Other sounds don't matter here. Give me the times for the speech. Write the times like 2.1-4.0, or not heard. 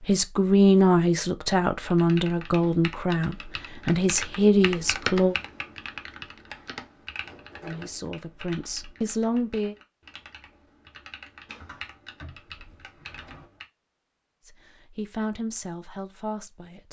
0.1-5.3, 7.6-9.8, 14.4-16.8.